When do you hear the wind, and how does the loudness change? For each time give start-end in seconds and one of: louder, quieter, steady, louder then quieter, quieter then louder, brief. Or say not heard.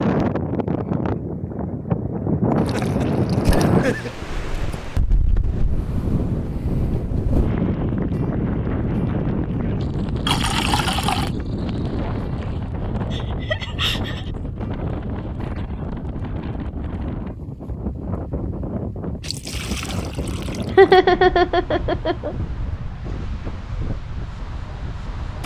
0.0-25.4 quieter.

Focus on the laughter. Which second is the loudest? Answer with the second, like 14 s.
21 s.